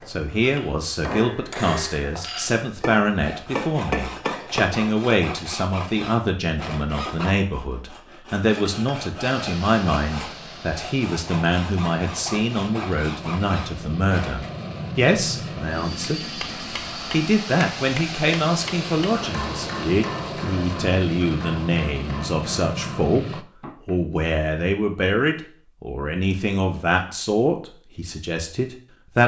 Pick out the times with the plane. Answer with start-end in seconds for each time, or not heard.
9.2-23.4.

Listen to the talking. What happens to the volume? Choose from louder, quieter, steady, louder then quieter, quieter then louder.
steady.